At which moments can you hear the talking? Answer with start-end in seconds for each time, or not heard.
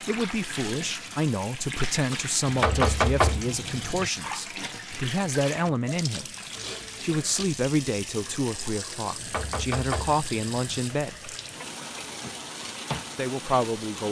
0.1-6.3, 7.0-11.3, 13.2-14.0.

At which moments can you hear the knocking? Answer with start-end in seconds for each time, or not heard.
2.5-4.1, 9.2-10.8.